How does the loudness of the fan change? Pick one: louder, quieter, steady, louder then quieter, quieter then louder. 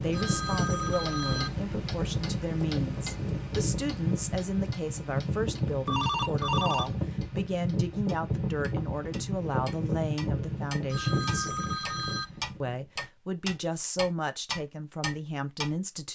steady.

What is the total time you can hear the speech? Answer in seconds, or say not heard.
15 s.